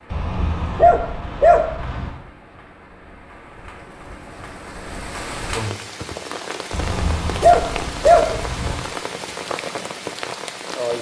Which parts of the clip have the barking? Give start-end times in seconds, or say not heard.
0.1-2.1, 6.7-8.8.